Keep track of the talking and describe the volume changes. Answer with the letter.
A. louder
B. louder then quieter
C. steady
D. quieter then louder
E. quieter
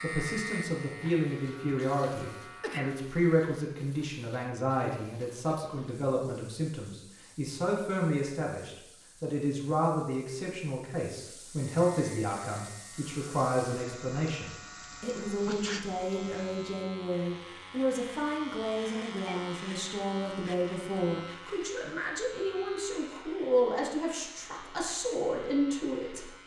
C.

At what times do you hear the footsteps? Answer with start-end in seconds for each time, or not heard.
not heard.